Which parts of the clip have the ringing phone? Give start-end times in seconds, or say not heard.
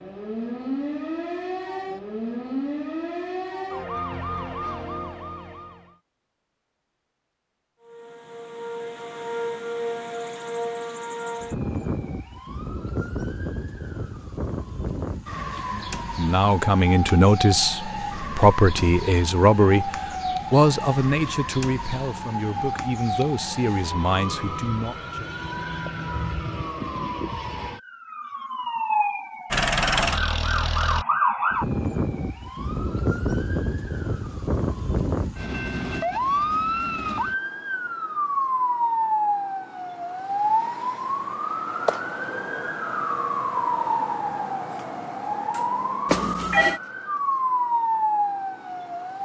46.0-46.8.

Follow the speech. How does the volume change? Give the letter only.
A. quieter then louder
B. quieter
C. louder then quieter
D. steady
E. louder
B.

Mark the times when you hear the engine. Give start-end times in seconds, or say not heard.
29.5-31.1.